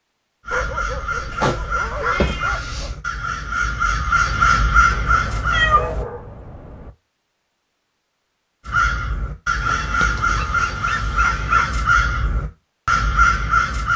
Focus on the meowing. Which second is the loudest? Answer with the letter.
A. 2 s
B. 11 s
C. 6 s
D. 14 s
C.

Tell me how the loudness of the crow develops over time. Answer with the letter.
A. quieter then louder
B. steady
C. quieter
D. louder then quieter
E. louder
E.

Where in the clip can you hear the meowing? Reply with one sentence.
You can hear the meowing from 1.3 to 2.9 s, from 5.0 to 6.0 s and from 9.6 to 11.6 s.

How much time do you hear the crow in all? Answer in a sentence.
The crow can be heard for 11 seconds in total.